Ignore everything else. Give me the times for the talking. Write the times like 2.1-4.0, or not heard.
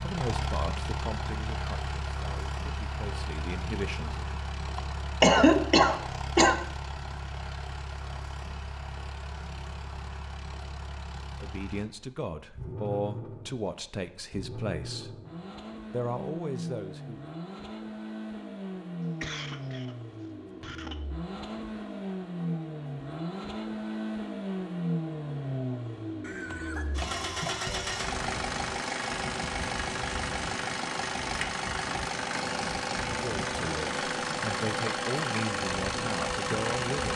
0.0-4.2, 11.2-15.2, 15.9-17.2, 33.0-37.1.